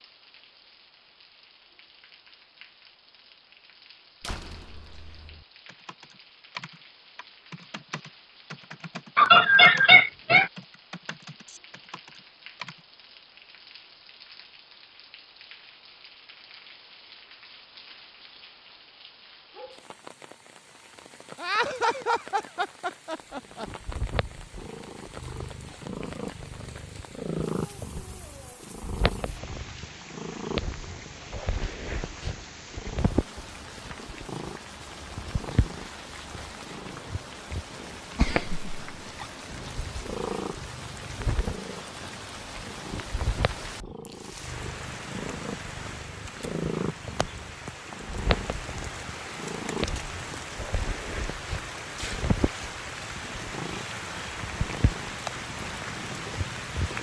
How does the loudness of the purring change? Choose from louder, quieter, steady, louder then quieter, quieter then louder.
steady.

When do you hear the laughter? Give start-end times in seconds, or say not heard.
9.2-10.5, 21.4-23.6, 38.1-39.3.